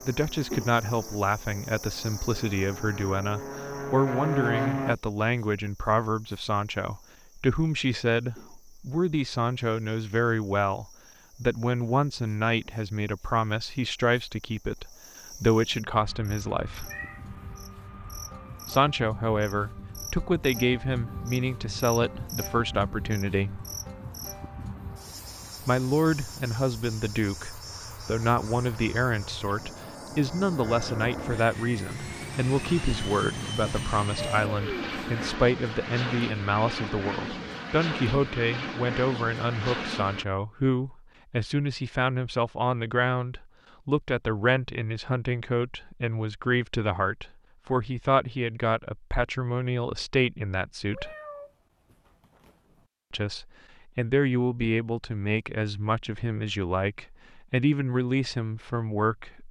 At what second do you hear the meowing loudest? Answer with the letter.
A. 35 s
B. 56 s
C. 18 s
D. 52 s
A.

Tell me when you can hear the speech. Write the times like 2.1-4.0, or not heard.
0.1-16.9, 18.6-23.6, 25.6-51.1, 53.1-59.4.